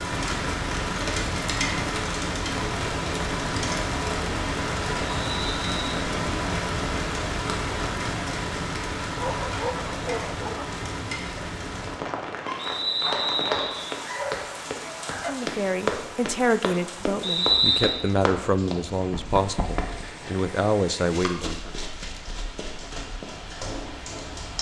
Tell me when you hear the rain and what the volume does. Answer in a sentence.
The rain can be heard from 0.0 to 24.5 s, getting quieter.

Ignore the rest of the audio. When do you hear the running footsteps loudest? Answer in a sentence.
The loudest moment of the running footsteps is at 16 seconds.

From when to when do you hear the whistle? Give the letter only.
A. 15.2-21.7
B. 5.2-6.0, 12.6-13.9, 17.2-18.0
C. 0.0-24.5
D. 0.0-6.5
B.